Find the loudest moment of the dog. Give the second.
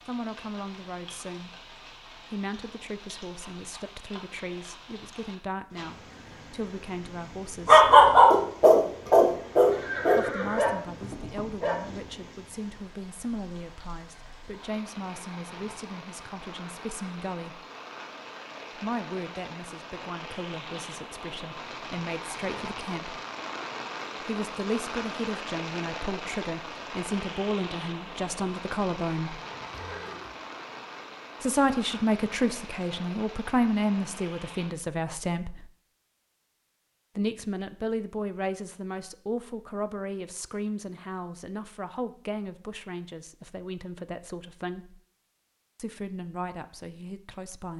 8 s.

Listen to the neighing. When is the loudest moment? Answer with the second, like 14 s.
10 s.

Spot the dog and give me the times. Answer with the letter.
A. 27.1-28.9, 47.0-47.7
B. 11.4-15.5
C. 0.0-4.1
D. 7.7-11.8
D.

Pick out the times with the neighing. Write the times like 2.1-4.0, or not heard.
9.7-11.5, 29.6-30.4.